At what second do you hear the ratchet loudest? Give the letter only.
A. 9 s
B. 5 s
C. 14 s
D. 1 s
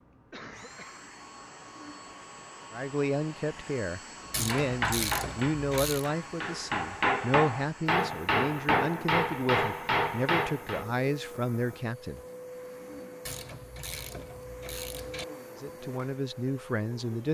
B.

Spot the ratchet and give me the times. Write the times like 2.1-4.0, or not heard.
4.3-6.1, 13.2-15.2.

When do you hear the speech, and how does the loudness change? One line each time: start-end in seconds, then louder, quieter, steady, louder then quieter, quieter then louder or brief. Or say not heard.
2.7-12.2 steady
15.6-17.2 brief.